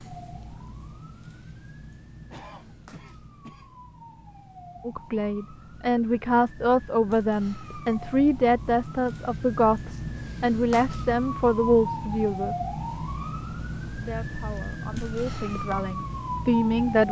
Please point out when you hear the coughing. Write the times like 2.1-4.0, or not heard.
2.2-3.8.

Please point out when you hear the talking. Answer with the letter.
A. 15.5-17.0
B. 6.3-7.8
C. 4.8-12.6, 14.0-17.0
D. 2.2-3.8
C.